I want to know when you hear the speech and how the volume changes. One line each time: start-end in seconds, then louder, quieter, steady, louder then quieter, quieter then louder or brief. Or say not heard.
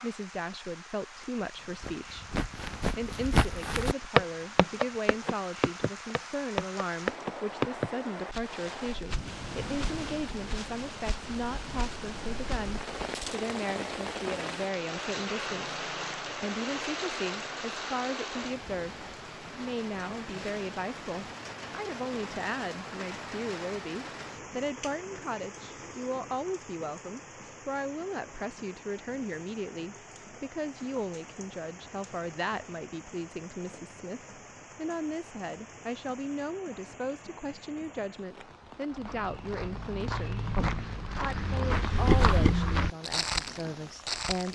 0.0-44.5 steady.